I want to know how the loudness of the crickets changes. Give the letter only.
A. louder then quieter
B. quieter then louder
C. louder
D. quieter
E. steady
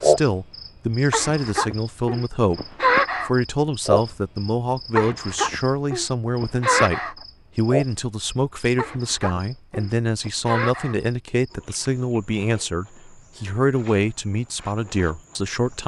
D.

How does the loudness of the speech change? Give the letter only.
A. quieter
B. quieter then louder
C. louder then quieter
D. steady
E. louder
D.